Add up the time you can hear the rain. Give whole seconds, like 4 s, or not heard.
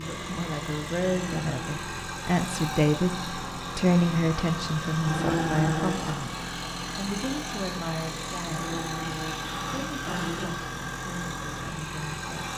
not heard.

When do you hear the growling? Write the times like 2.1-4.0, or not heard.
1.0-1.8, 5.0-6.2, 8.4-10.4.